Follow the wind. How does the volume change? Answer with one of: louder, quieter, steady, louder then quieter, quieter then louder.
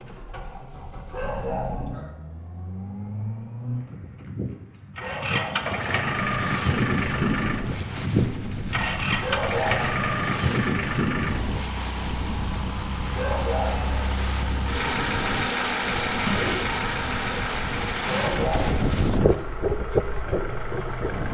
louder.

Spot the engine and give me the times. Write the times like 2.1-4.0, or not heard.
0.0-21.2.